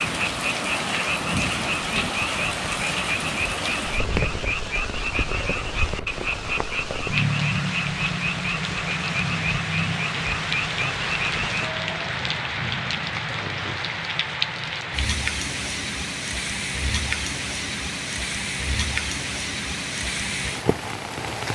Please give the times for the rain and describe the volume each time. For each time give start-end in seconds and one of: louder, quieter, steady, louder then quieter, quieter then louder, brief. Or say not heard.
0.0-21.5 steady.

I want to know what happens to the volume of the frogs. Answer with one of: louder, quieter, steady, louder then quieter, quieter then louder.
steady.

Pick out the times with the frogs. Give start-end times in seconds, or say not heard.
0.0-11.8.